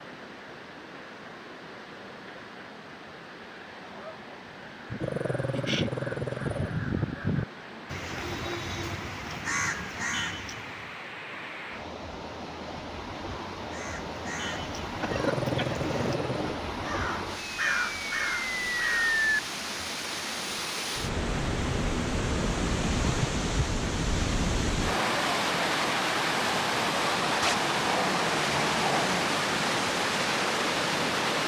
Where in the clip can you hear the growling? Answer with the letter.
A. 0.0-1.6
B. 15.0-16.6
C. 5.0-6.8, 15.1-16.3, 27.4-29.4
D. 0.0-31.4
C.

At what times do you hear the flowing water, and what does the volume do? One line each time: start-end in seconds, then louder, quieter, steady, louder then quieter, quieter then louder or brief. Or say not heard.
0.0-31.4 louder.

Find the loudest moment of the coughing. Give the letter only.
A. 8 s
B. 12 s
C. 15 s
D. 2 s
C.